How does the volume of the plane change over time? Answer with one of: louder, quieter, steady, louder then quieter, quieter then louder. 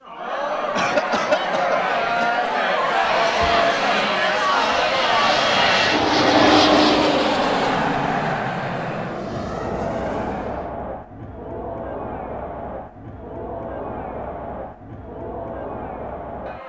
louder then quieter.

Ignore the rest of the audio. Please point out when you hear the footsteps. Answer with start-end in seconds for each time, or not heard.
not heard.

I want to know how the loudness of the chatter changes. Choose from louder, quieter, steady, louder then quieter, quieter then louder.
quieter.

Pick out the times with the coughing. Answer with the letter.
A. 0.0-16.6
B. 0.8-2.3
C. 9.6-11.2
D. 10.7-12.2
B.